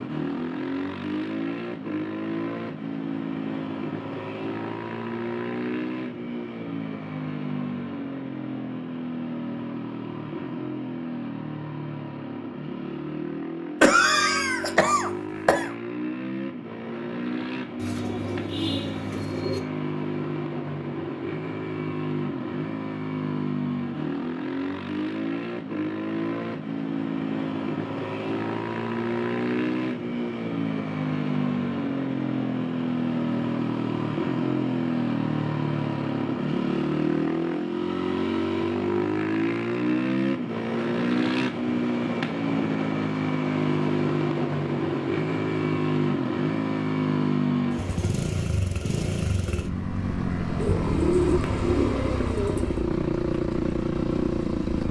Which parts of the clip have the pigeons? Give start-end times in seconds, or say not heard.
17.8-19.6, 50.5-52.8.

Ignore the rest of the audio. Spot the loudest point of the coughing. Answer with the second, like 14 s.
14 s.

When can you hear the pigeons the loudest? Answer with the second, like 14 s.
51 s.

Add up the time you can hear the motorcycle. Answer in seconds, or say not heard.
55 s.